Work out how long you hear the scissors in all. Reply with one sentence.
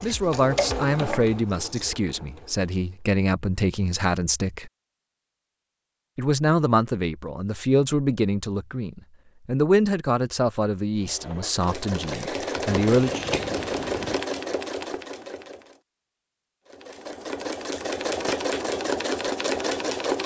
You can hear the scissors for 3 seconds altogether.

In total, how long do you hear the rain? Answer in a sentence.
The rain can't be heard in this clip.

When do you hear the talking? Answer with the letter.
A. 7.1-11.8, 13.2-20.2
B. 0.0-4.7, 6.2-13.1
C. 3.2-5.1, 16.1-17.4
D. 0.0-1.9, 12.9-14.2
B.